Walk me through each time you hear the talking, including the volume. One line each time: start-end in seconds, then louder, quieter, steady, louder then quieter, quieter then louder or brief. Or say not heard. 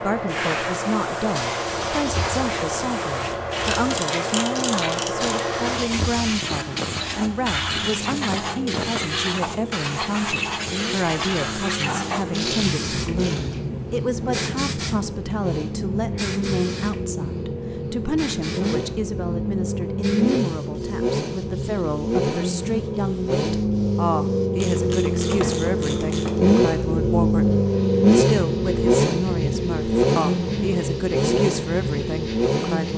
0.0-32.9 steady.